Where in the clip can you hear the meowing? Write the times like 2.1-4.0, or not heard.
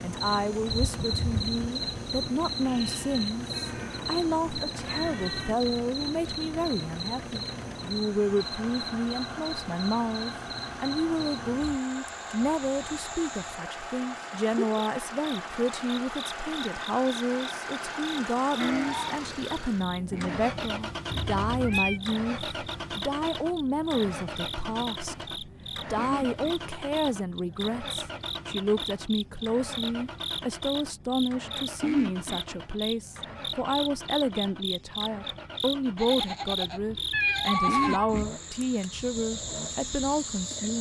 3.5-5.5, 21.1-22.0, 37.1-38.1.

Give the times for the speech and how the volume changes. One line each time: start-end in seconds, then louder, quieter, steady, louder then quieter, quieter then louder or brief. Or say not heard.
0.0-40.7 steady.